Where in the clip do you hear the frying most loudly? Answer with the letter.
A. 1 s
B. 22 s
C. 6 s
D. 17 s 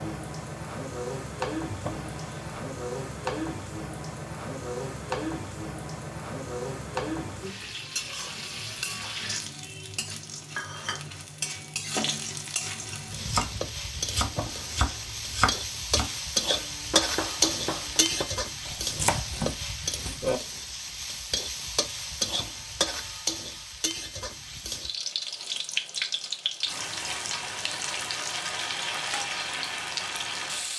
D.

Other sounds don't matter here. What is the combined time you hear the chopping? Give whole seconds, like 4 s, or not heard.
7 s.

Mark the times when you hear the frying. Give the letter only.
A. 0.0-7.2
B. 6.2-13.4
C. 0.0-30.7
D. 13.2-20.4
C.